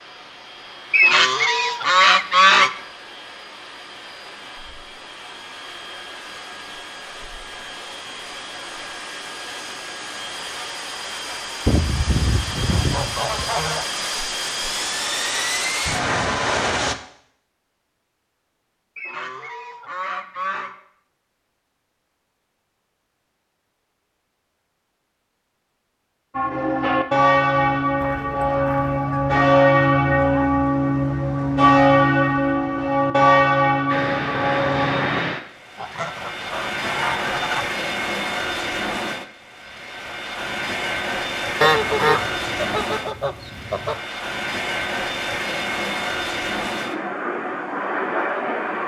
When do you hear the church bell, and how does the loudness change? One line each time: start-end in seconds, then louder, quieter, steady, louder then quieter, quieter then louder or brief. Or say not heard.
26.4-35.2 steady.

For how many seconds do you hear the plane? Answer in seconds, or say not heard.
32 s.